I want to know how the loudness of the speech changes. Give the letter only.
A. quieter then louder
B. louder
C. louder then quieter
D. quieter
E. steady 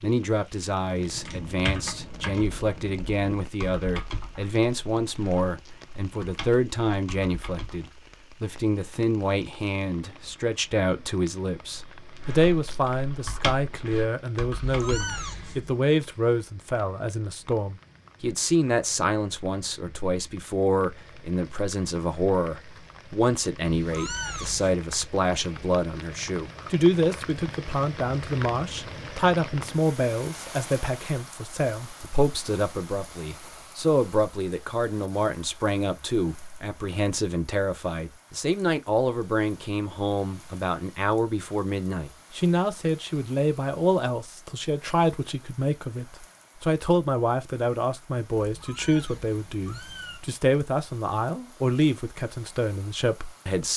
E.